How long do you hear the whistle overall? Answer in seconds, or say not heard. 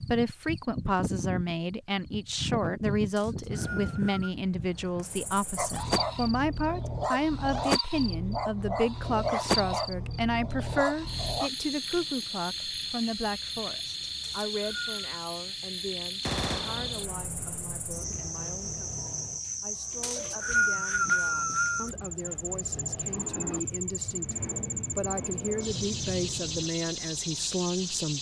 4 s.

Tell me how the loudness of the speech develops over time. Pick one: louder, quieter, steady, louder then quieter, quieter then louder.
quieter then louder.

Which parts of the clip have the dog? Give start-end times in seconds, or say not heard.
5.5-11.5.